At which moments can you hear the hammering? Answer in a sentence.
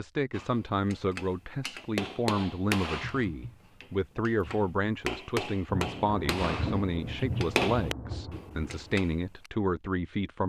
The hammering can be heard from 0.3 to 9.5 s.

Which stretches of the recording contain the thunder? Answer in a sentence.
You can hear the thunder from 5.7 to 9.0 s.